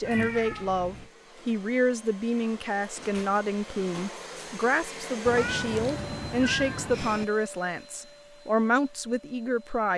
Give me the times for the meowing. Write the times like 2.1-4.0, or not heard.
0.0-1.1, 5.2-7.2.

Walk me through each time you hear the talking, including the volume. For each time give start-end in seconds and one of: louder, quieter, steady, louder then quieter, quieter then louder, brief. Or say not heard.
0.0-9.9 steady.